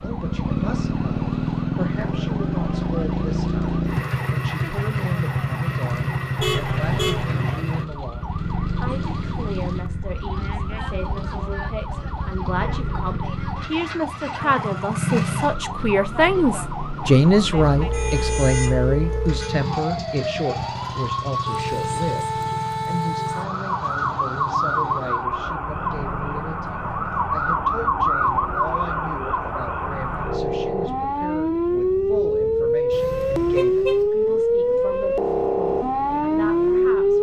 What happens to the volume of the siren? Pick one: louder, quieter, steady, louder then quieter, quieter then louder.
louder.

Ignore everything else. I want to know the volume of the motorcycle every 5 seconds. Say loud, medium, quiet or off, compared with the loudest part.
loud, loud, medium, medium, medium, quiet, quiet, quiet.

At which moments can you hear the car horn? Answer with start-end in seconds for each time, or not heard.
6.3-7.2, 17.7-19.5, 32.9-34.0.